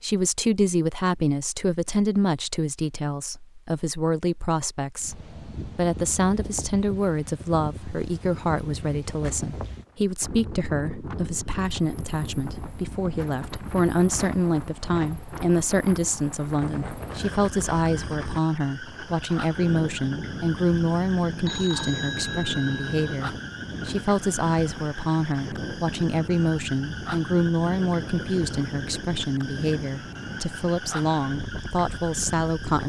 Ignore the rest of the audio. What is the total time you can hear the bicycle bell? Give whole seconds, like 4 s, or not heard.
2 s.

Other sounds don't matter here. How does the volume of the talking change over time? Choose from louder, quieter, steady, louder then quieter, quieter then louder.
steady.